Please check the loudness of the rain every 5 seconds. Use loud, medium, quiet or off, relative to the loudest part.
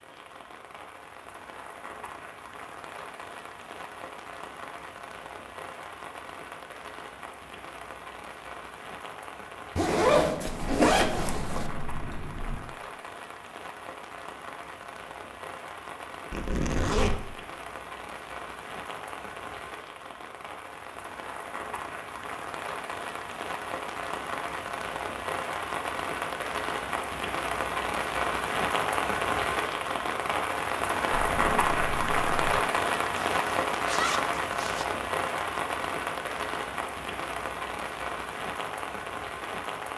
quiet, quiet, quiet, quiet, medium, loud, loud, medium.